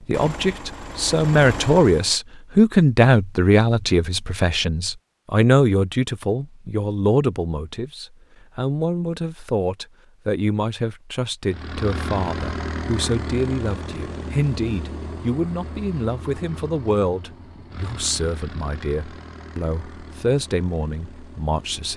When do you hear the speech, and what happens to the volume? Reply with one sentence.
You can hear the speech from 0.0 to 21.9 s, getting quieter.